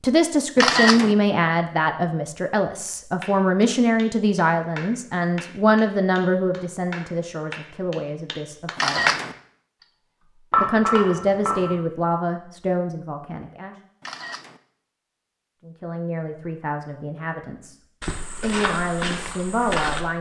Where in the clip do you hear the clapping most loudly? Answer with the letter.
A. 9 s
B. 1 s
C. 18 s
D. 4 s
A.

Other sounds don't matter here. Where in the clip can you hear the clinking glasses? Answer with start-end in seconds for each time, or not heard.
10.5-11.8.